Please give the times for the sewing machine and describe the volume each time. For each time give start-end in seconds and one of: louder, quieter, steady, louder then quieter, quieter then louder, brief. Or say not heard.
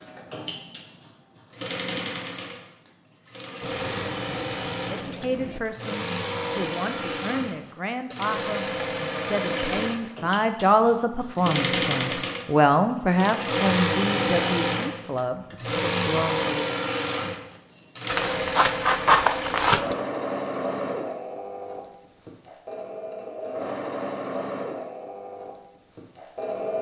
0.0-26.7 louder then quieter.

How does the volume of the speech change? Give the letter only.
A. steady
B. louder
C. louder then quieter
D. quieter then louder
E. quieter
C.